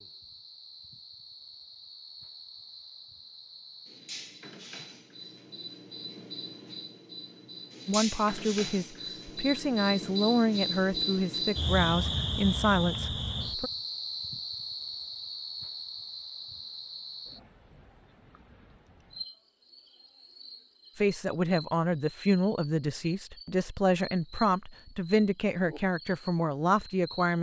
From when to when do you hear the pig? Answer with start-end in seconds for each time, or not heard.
not heard.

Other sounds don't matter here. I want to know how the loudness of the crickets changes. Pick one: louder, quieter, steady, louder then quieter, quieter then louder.
louder then quieter.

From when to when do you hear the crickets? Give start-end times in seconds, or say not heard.
0.0-27.3.